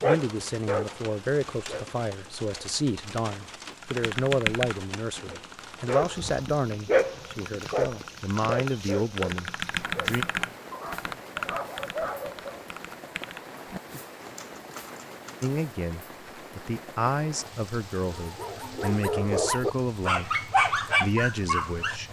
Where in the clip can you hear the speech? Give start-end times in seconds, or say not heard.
0.0-10.2, 15.4-22.0.